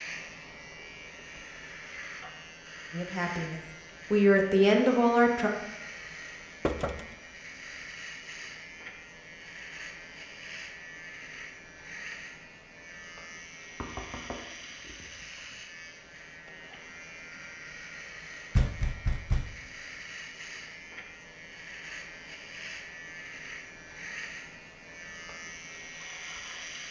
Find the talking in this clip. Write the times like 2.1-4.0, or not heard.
2.9-5.5.